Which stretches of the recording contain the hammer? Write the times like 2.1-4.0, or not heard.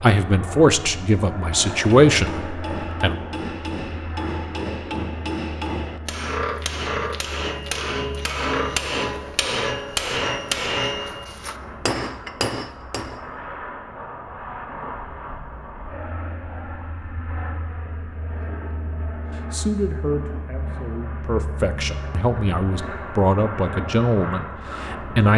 1.4-13.2.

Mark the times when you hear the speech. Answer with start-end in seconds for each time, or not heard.
0.0-3.1, 19.5-25.3.